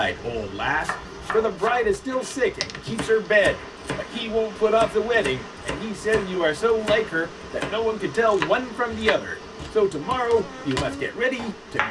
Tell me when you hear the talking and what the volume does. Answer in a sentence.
You can hear the talking from 0.0 to 11.8 s, at a steady volume.